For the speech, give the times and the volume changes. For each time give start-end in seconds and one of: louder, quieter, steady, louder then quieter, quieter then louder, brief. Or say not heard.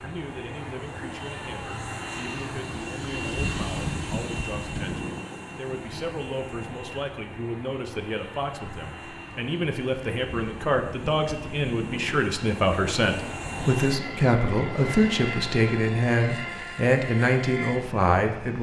0.0-18.5 louder.